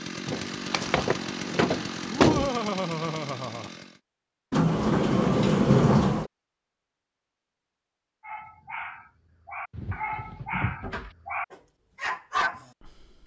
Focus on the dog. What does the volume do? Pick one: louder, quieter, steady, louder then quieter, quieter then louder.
louder.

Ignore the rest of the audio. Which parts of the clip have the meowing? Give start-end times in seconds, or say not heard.
not heard.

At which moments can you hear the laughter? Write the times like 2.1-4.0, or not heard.
2.1-3.7.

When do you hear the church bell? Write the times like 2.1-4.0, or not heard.
not heard.